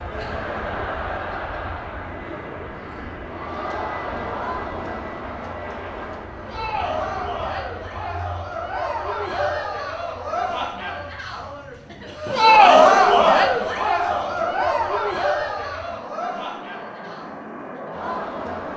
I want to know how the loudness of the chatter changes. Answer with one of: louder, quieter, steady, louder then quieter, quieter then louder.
louder then quieter.